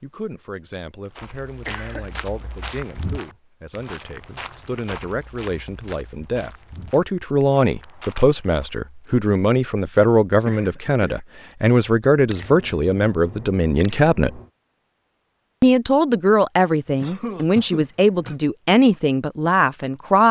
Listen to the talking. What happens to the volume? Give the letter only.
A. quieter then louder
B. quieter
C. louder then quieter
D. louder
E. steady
D.